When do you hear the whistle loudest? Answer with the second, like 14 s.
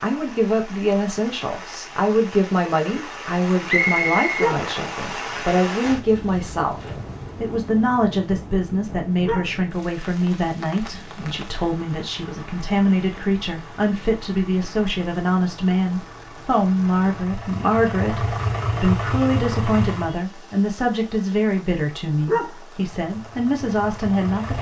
4 s.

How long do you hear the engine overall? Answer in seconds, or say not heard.
11 s.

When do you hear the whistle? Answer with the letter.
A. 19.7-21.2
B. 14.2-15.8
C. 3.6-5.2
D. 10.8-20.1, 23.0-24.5
C.